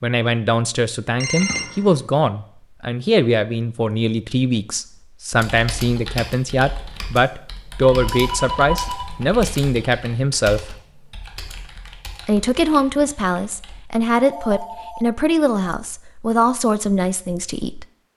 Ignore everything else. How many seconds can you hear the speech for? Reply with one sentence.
The speech can be heard for 16 seconds in total.